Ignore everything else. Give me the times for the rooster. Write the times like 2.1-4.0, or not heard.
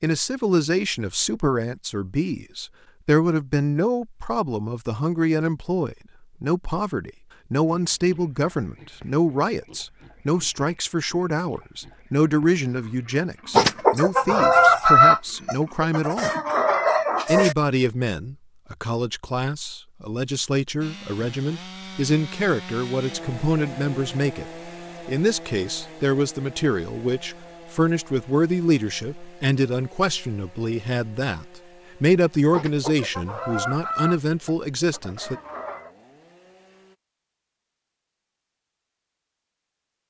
13.5-17.6, 32.5-35.9.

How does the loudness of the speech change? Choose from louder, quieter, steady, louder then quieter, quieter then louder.
steady.